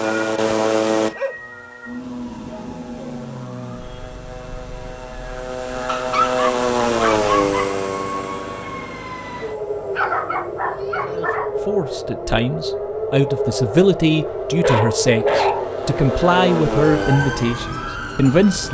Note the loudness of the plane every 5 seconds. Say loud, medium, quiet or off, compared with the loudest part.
loud, loud, quiet, loud.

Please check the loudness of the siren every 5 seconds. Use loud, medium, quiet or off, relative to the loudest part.
medium, medium, loud, loud.